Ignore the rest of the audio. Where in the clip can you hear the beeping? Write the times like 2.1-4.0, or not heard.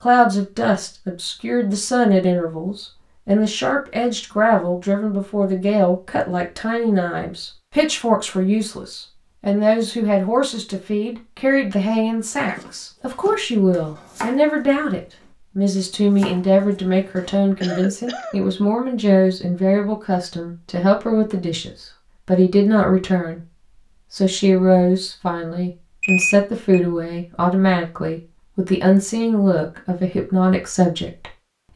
26.0-26.8.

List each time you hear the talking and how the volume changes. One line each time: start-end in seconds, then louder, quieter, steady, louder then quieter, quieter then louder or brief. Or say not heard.
0.0-23.4 steady
24.1-31.7 steady.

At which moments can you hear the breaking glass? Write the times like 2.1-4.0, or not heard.
not heard.